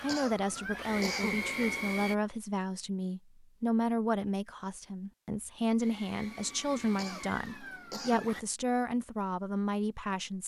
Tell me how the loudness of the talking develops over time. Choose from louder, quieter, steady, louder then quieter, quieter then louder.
steady.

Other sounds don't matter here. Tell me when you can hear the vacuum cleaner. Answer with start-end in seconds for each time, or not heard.
0.0-2.1, 5.8-8.4.